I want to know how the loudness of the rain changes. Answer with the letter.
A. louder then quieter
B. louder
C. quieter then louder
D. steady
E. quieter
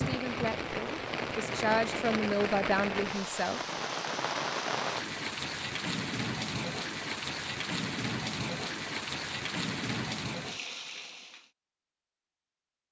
D.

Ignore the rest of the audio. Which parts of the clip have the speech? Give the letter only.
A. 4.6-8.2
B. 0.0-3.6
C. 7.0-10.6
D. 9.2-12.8
B.